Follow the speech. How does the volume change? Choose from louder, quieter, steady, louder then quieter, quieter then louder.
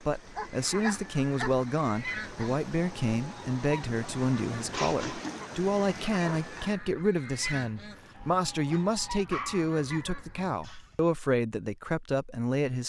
steady.